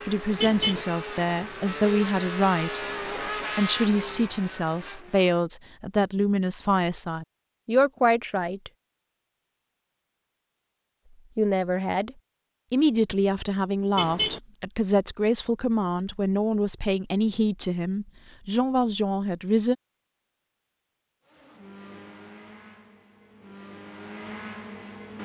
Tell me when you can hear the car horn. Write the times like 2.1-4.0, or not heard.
0.3-0.8, 13.9-14.4.